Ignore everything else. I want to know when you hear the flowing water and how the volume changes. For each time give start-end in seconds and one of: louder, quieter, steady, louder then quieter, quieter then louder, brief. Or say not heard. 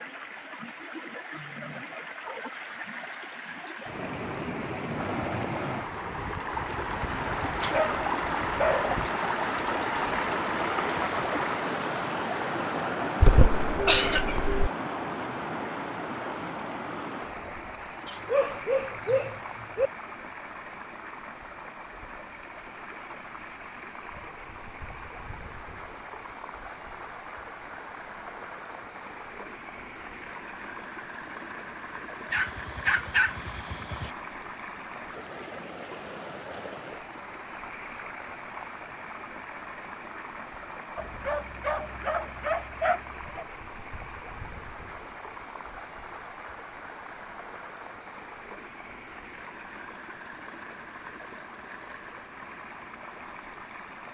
0.0-54.0 quieter.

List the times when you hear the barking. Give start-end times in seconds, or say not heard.
7.6-8.9, 18.1-19.9, 32.3-34.1, 41.0-43.5.